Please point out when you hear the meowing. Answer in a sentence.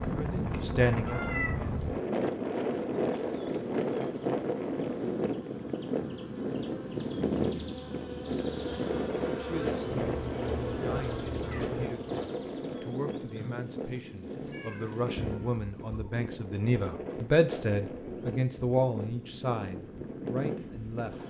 The meowing can be heard from 0.3 to 1.8 s, from 9.8 to 11.8 s and from 14.5 to 16.1 s.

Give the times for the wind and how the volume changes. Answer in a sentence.
The wind can be heard from 0.0 to 21.2 s, getting quieter.